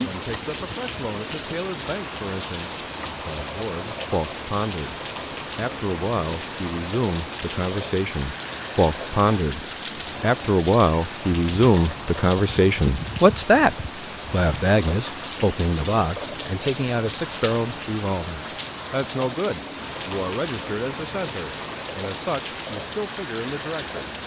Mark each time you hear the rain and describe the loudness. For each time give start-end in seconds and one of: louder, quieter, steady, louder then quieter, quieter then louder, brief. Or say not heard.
0.0-24.2 steady.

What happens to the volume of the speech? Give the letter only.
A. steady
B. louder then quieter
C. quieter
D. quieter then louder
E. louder
B.